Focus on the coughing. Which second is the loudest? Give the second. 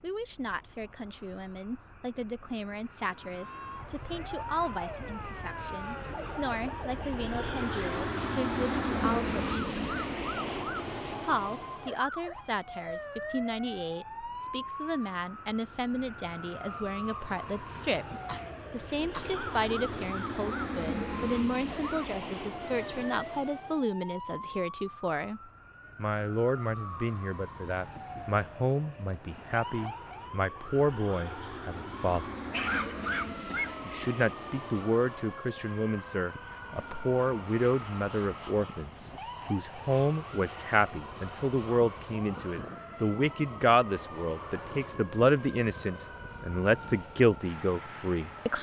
33 s.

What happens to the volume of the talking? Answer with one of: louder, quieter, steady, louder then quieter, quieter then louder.
louder.